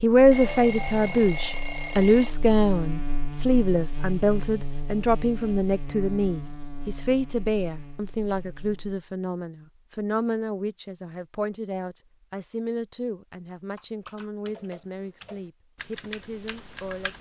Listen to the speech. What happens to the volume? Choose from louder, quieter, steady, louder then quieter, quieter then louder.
quieter.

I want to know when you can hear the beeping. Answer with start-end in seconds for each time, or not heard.
0.3-2.4.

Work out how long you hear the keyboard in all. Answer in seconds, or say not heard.
3 s.